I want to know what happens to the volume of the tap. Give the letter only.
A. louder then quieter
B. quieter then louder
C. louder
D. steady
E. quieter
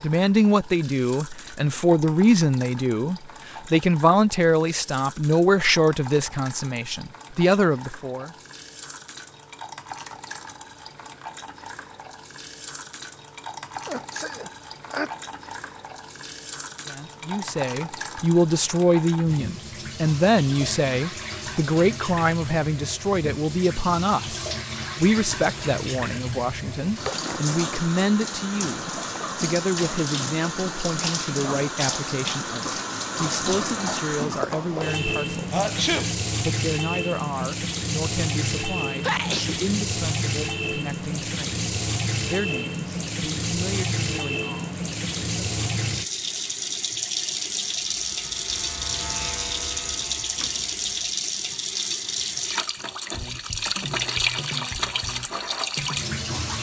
C.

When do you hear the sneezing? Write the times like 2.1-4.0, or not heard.
13.8-15.1, 35.5-36.1, 39.0-39.6.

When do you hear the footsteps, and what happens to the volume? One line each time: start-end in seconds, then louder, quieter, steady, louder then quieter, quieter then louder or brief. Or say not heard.
not heard.